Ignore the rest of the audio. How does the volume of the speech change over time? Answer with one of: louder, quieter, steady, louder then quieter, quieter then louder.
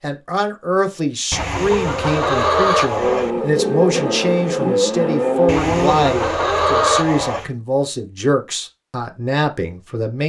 steady.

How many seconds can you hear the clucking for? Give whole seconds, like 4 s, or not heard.
4 s.